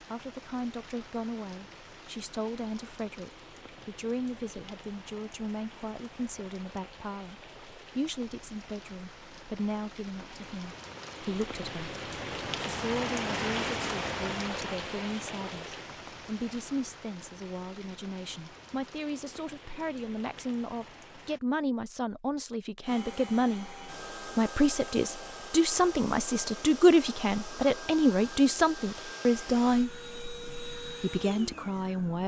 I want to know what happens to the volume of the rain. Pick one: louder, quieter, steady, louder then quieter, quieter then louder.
louder then quieter.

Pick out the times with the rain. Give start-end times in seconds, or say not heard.
0.0-21.4.